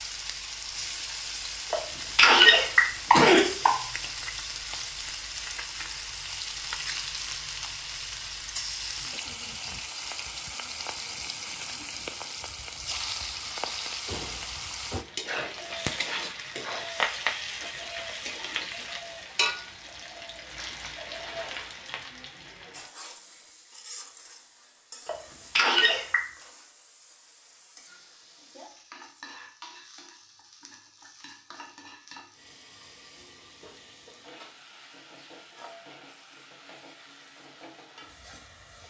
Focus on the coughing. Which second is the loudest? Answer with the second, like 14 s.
2 s.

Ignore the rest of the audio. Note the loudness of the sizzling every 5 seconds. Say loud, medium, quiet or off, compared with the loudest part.
loud, loud, loud, loud, medium, quiet, quiet, quiet.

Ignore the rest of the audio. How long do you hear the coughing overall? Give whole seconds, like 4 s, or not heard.
3 s.